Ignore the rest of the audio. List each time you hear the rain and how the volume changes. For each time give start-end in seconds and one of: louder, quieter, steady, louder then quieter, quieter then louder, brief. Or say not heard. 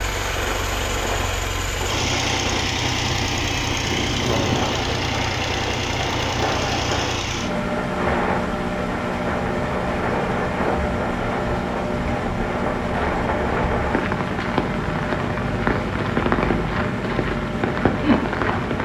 0.0-18.8 louder.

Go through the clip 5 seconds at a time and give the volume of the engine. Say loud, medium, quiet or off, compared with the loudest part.
loud, loud, loud, medium.